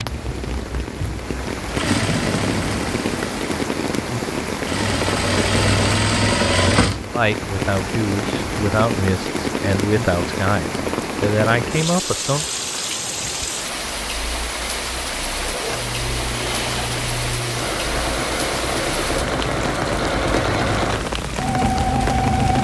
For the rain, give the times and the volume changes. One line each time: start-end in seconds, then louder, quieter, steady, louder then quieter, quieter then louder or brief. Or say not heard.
0.0-22.5 steady.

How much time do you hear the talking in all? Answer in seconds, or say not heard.
5 s.